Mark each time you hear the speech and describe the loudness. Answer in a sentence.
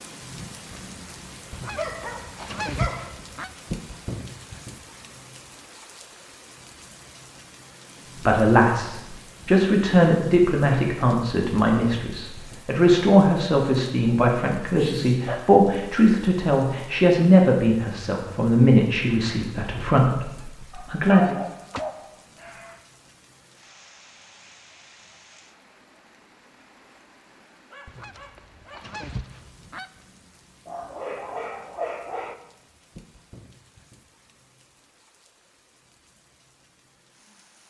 The speech can be heard from 8.2 to 21.4 s, at a steady volume.